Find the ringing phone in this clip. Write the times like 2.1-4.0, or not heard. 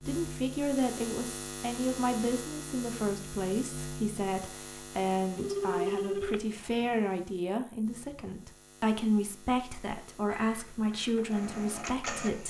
5.3-7.0.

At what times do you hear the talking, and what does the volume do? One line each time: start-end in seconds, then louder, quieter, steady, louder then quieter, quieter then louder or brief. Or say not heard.
0.1-12.4 steady.